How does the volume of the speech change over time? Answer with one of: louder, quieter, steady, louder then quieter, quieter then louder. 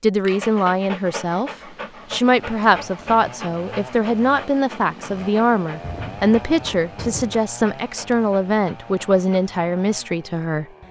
steady.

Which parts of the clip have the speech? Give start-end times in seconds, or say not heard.
0.0-10.7.